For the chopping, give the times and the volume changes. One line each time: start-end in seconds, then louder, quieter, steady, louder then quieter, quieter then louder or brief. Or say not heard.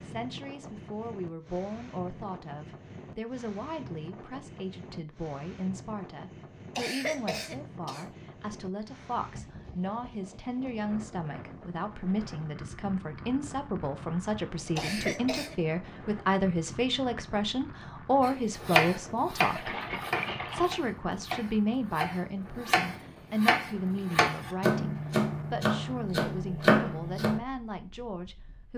18.2-27.4 quieter then louder.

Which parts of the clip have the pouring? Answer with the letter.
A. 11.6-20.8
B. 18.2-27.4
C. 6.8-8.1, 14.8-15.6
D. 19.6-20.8
D.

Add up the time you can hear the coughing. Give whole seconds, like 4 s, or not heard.
2 s.